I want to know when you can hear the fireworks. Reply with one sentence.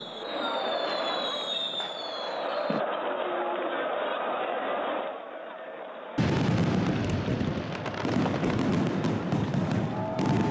The fireworks can be heard from 0.0 to 2.9 s and from 6.2 to 10.4 s.